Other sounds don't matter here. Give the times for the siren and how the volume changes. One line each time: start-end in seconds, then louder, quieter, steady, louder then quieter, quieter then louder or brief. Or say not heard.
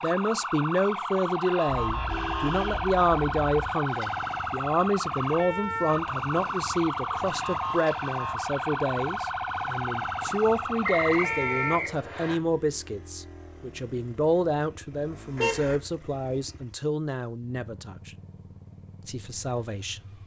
0.0-11.8 steady.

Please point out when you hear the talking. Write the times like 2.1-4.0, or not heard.
0.0-18.1, 19.1-20.1.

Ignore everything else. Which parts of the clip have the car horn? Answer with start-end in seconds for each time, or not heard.
1.7-3.7, 15.3-15.8.